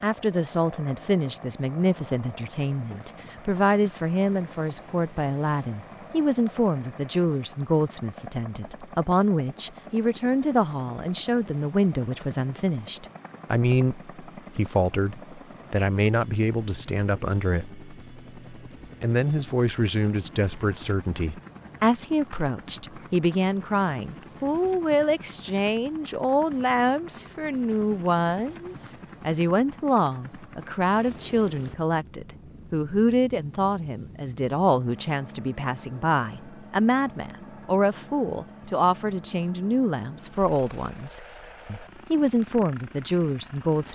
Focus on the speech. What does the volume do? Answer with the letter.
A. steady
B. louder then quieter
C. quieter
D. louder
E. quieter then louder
A.